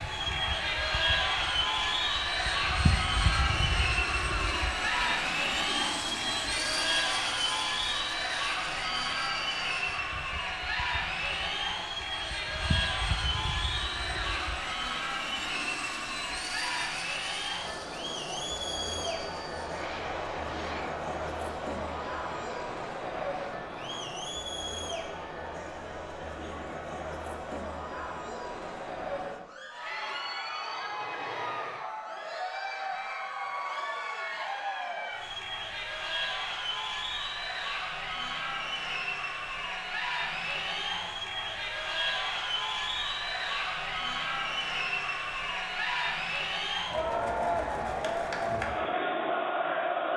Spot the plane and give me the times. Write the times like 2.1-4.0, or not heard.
0.0-24.2, 29.8-31.9.